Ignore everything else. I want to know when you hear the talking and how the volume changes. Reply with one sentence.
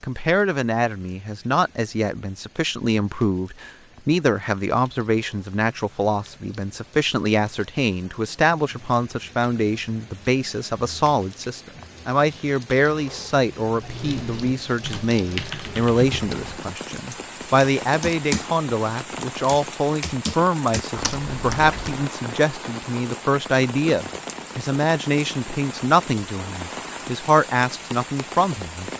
The talking can be heard from 0.0 to 28.9 s, at a steady volume.